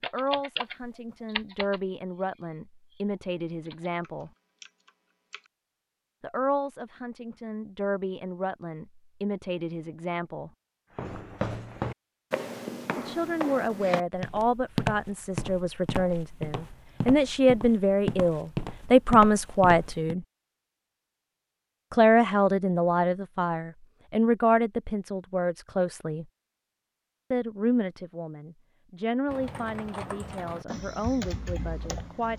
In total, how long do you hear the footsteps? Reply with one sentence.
You can hear the footsteps for 9 seconds altogether.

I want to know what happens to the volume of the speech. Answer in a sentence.
The volume of the speech goes up, then down.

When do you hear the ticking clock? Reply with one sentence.
You can't hear the ticking clock here.